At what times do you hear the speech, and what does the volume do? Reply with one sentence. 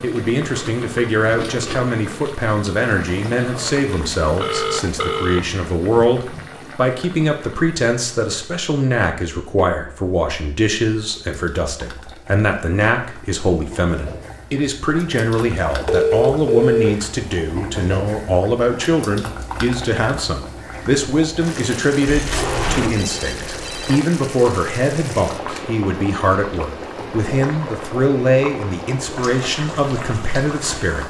You can hear the speech from 0.0 to 31.0 s, at a steady volume.